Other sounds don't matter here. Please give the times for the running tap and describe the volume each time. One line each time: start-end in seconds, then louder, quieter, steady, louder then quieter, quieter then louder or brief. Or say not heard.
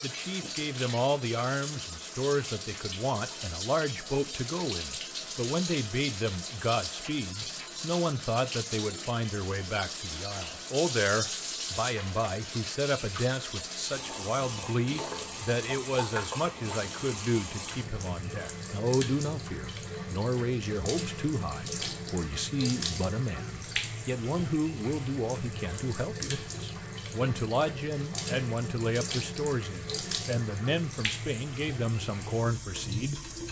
0.0-33.4 steady.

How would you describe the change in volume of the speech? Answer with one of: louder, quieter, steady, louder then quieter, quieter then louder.
steady.